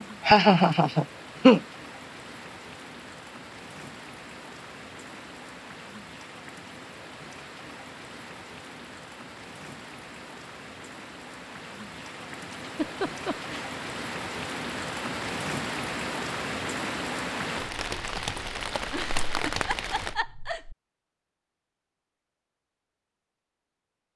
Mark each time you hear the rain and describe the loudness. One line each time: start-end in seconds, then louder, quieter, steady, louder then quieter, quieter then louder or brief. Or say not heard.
0.0-20.1 louder.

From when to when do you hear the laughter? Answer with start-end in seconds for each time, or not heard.
0.2-1.6, 12.6-13.6, 18.9-20.8.